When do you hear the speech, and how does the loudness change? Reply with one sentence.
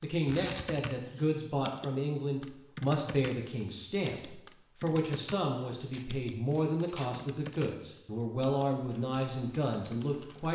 You can hear the speech from 0.0 to 10.5 s, at a steady volume.